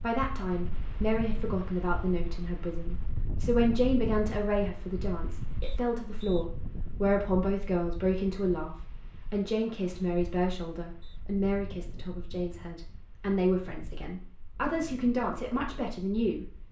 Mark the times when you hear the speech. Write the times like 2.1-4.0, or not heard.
0.0-16.5.